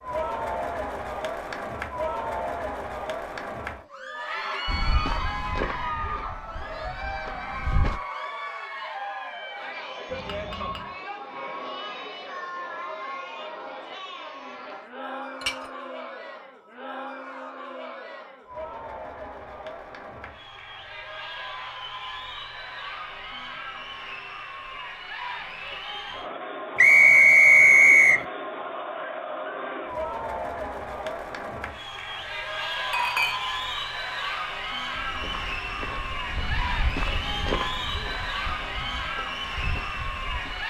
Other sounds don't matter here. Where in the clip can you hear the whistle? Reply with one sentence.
The whistle can be heard from 26.8 to 28.2 s.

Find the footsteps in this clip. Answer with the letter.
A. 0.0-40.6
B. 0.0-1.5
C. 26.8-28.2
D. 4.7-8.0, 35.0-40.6
D.